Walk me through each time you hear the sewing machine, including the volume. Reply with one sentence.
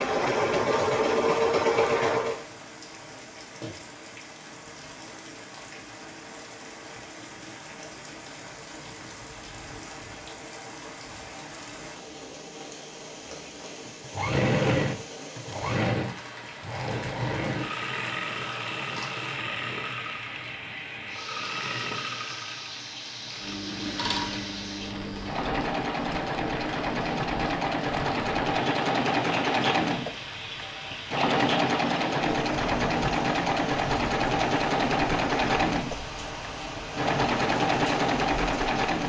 You can hear the sewing machine briefly from 0.0 to 2.5 s; and from 13.8 to 39.0 s, getting quieter then louder.